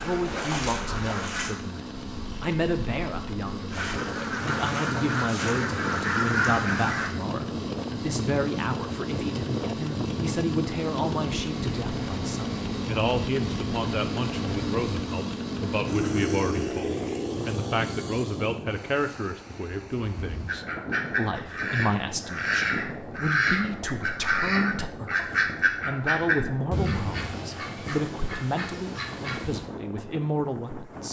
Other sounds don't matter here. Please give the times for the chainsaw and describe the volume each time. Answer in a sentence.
The chainsaw can be heard from 0.0 to 18.6 s, getting louder.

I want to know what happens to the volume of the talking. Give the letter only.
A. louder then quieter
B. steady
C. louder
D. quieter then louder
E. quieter
B.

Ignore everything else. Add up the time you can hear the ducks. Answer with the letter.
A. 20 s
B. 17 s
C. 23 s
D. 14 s
D.